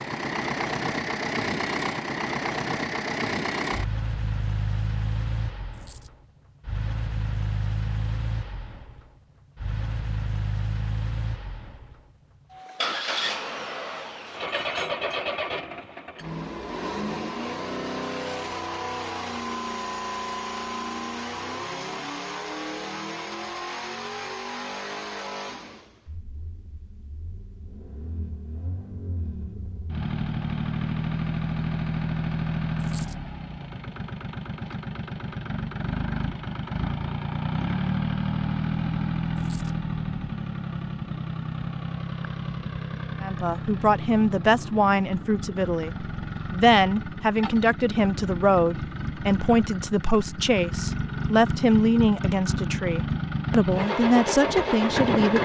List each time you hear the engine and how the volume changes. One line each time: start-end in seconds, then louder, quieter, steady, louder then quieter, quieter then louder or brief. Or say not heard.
0.0-55.4 steady.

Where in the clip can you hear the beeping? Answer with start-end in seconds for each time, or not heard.
not heard.